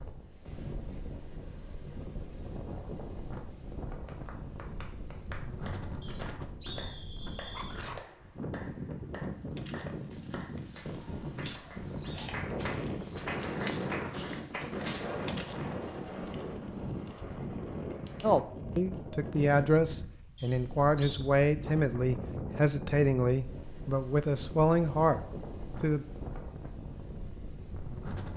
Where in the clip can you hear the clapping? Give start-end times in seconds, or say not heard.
4.0-15.2.